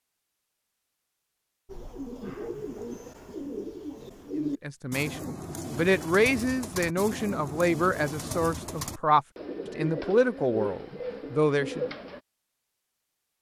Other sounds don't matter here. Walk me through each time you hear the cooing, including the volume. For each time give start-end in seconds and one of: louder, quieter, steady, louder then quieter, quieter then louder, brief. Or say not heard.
1.6-12.2 steady.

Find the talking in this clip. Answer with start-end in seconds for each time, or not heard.
4.4-11.9.